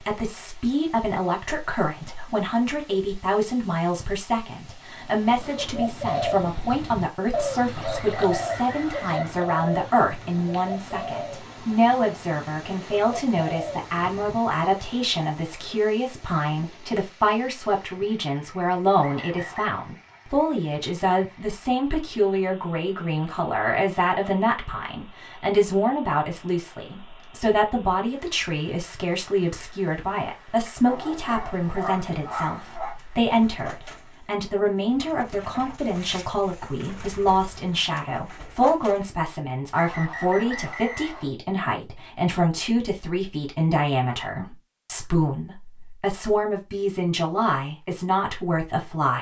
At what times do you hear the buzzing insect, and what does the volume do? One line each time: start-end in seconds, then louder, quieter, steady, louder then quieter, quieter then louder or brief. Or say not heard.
not heard.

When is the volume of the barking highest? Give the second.
32 s.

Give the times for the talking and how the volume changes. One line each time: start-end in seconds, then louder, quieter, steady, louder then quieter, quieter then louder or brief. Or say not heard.
0.0-49.1 steady.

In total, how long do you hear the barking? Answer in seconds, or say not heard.
2 s.